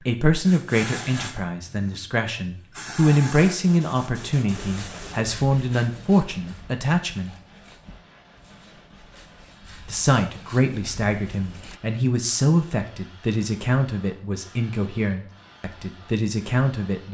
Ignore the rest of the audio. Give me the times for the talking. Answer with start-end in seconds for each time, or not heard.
0.0-7.3, 9.8-17.0.